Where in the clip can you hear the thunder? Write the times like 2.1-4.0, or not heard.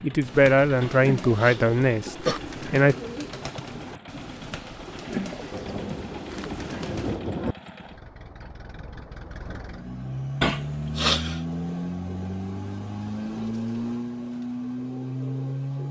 5.5-7.5.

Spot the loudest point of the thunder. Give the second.
7 s.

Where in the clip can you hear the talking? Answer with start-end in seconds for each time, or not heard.
0.0-3.0.